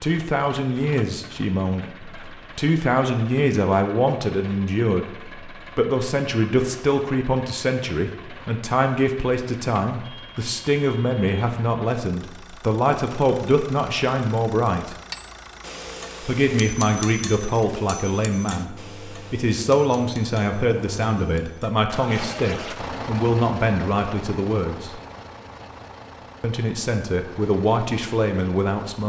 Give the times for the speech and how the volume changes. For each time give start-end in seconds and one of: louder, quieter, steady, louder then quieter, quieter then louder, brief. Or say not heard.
0.0-14.9 steady
16.2-25.0 steady
26.4-29.0 brief.